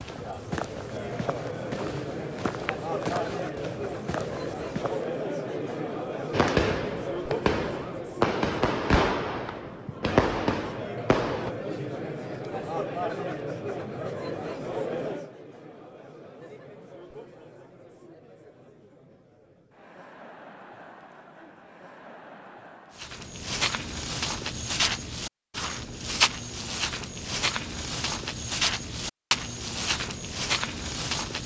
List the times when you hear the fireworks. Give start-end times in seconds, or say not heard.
6.3-11.5.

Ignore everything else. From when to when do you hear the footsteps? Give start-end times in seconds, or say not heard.
0.0-5.2, 22.9-31.4.